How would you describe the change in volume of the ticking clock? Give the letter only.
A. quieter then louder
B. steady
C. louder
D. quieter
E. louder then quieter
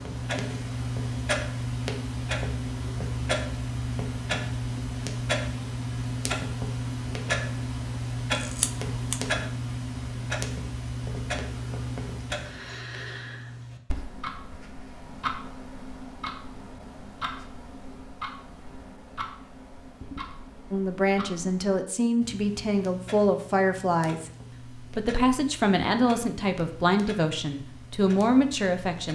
D.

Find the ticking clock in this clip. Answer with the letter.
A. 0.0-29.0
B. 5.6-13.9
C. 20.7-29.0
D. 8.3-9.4
A.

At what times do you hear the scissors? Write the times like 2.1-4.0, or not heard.
8.3-9.4.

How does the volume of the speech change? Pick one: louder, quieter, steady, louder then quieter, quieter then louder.
steady.